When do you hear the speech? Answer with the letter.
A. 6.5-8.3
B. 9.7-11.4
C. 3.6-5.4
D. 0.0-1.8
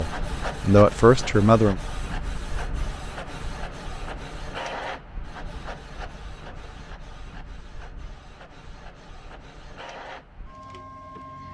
D.